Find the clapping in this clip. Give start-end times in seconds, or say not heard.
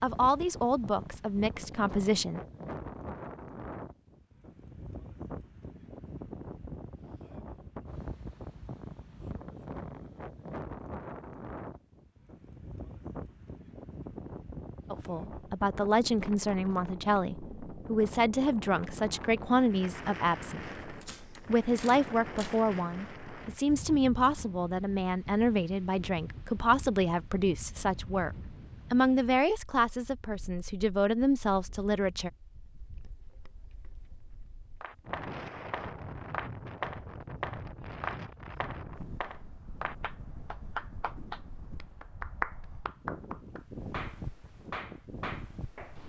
34.8-46.0.